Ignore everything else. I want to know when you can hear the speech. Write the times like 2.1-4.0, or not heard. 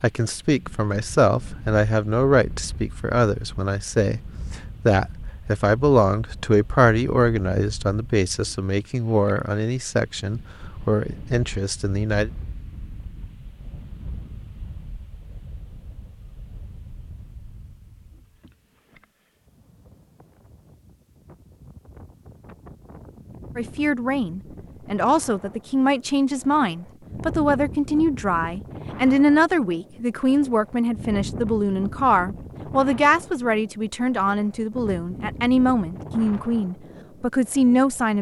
0.0-12.3, 23.6-38.1.